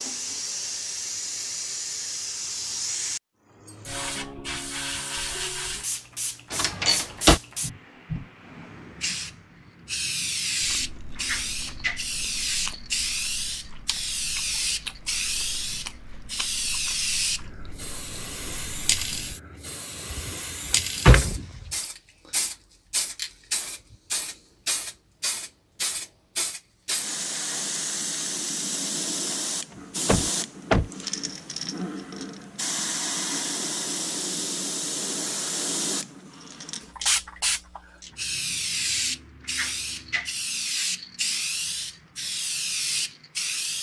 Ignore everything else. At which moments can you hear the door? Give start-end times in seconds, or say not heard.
6.5-7.4, 20.1-21.7, 30.1-30.9.